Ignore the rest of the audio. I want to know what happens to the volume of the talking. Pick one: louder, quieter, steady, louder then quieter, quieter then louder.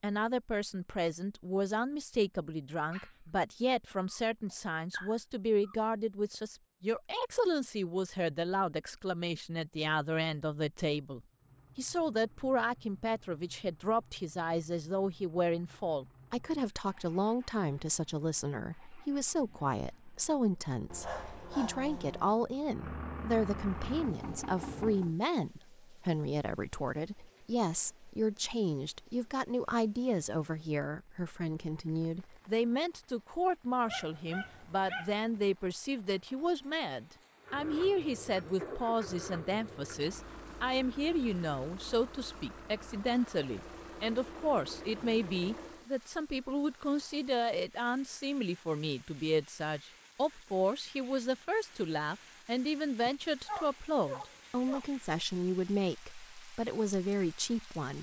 steady.